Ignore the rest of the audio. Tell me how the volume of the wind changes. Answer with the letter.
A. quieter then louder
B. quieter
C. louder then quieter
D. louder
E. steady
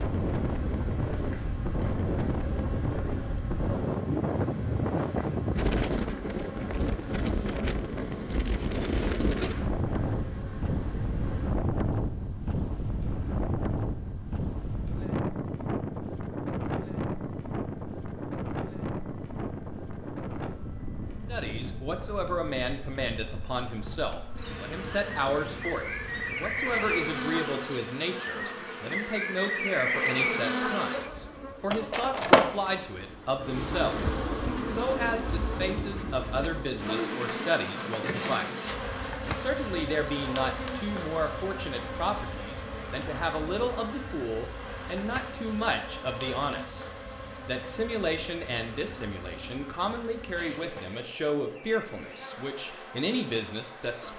B.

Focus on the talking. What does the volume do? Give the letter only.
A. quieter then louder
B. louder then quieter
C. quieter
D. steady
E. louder
D.